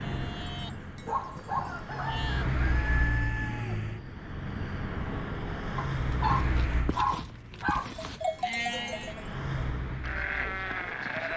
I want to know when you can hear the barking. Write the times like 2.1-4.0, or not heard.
1.1-2.2, 5.8-8.2.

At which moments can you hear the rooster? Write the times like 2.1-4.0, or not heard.
1.4-4.8.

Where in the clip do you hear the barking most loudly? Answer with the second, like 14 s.
7 s.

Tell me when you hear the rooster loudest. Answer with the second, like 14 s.
3 s.